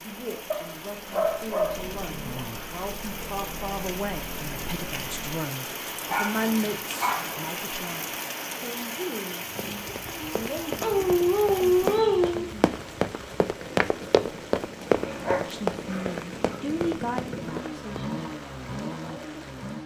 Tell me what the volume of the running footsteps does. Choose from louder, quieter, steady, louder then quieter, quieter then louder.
louder then quieter.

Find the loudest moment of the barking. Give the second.
12 s.